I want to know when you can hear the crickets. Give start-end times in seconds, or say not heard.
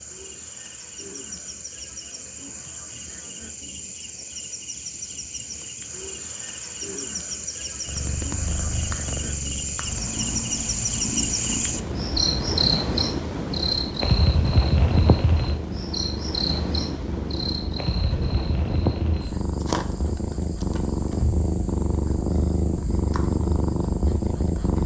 0.0-24.8.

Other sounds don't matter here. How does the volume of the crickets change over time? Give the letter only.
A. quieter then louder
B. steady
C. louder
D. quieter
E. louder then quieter
E.